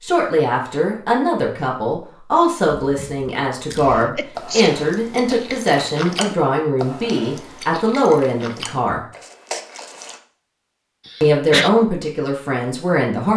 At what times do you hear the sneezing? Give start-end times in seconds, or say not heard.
3.9-4.8, 11.1-11.7.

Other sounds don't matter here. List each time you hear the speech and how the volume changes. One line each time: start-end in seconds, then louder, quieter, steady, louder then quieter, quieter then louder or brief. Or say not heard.
0.0-9.1 steady
11.2-13.3 brief.